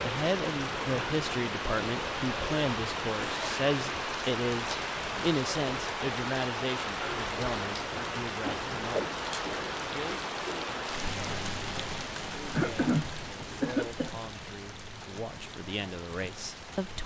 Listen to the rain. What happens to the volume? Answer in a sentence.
The loudness of the rain goes down.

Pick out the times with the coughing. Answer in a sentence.
The coughing can be heard from 12.6 to 14.2 s.